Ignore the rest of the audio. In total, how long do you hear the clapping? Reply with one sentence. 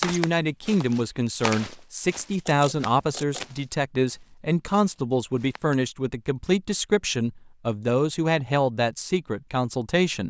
The clapping can't be heard in this clip.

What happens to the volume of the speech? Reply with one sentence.
The loudness of the speech stays about the same.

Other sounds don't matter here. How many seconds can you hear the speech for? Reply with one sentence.
The speech can be heard for 10 seconds in total.